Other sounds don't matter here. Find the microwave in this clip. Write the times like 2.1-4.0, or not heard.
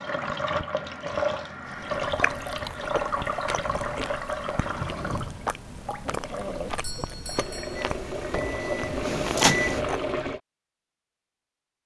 7.8-9.8.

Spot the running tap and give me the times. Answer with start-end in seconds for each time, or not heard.
0.0-10.4.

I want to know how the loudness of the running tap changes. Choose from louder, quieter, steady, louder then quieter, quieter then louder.
quieter then louder.